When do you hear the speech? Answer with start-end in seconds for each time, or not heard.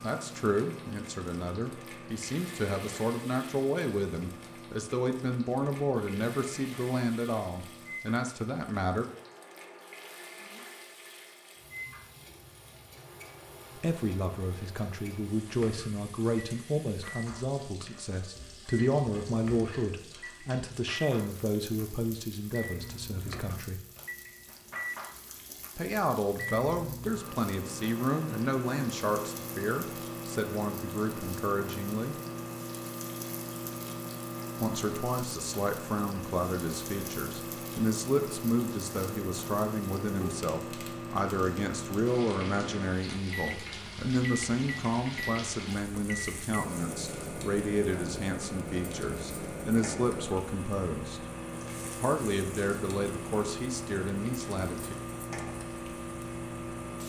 0.0-9.1, 13.8-23.8, 25.8-32.1, 34.6-51.2, 52.0-55.0.